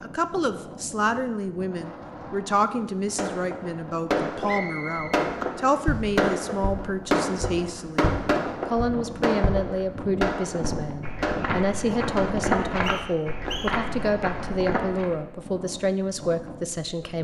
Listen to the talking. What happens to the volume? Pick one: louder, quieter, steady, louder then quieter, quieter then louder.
steady.